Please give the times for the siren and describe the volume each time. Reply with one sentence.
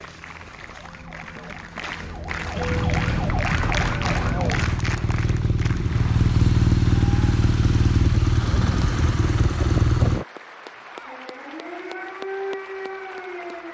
You can hear the siren from 0.0 to 4.8 s, getting louder; and briefly from 10.8 to 13.6 s.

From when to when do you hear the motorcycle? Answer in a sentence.
You can hear the motorcycle from 2.6 to 10.2 s.